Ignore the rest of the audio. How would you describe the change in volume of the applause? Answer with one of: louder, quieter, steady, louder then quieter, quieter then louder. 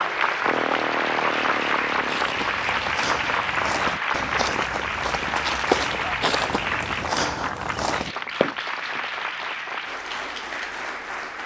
quieter.